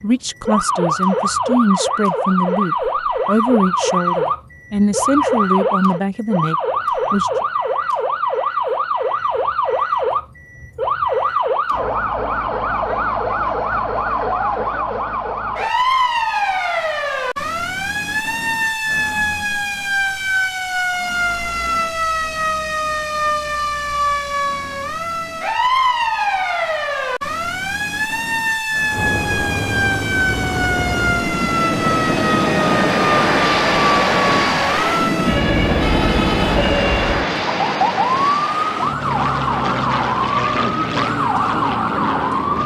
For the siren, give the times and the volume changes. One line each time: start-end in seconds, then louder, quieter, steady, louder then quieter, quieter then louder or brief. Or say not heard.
0.0-42.6 steady.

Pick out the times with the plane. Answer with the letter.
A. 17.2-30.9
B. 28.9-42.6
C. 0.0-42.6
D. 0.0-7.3
B.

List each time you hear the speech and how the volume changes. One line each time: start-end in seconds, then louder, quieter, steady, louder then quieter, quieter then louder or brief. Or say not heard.
0.0-7.3 steady.